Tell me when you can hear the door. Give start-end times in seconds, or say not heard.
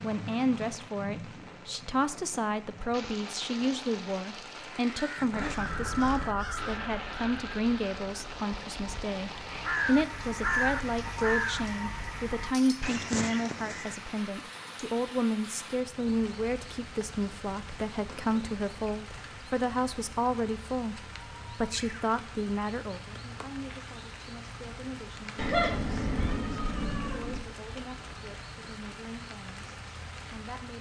not heard.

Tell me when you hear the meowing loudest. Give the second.
26 s.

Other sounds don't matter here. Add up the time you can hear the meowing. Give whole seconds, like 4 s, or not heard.
2 s.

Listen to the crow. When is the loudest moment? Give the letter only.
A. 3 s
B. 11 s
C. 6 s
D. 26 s
B.